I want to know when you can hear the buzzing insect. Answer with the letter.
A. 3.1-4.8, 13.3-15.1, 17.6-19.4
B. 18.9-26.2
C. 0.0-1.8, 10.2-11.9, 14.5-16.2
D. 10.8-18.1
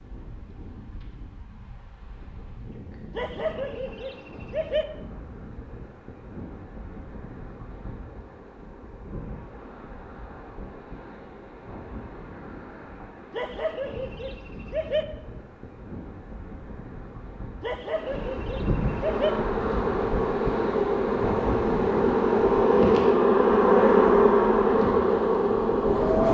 B.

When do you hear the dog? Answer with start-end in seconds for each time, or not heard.
3.1-4.8, 13.3-15.1, 17.6-19.4.